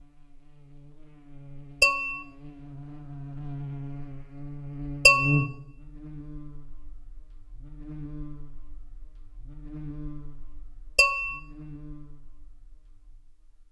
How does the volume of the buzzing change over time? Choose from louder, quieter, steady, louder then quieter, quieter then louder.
louder then quieter.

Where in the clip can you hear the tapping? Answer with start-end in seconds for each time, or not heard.
1.8-2.2, 5.0-5.5, 10.9-11.4.